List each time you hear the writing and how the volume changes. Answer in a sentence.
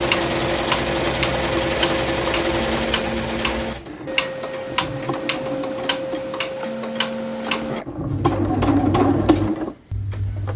You can't hear the writing here.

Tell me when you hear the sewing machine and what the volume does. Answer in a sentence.
You can hear the sewing machine from 0.0 to 10.5 s, getting quieter then louder.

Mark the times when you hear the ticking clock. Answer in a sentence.
You can hear the ticking clock from 0.0 to 10.5 s.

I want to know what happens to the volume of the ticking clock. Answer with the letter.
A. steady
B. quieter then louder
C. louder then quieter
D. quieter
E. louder
D.